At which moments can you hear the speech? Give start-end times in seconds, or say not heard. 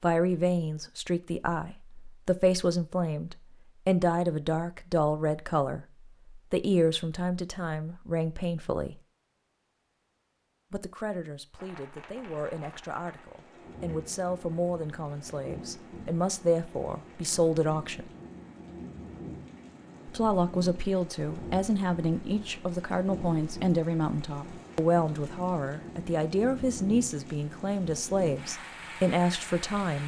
0.0-9.0, 10.7-18.1, 20.1-30.0.